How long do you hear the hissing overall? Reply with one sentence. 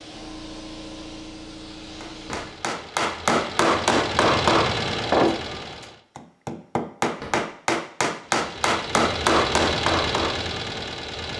The hissing can be heard for 3 seconds in total.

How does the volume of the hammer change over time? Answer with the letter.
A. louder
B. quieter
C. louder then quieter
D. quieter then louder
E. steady
D.